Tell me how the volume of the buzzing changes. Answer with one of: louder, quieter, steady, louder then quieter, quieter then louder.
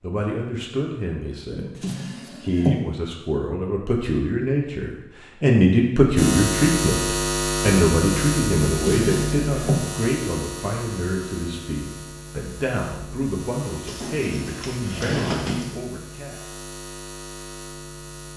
quieter.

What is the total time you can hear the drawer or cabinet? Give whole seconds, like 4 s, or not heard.
4 s.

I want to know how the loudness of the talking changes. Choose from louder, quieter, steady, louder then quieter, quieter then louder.
louder then quieter.